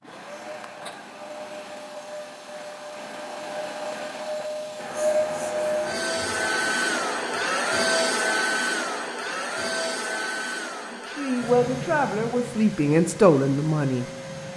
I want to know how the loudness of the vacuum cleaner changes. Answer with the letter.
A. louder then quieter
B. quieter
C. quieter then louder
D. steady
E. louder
A.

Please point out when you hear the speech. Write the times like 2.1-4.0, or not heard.
10.9-14.1.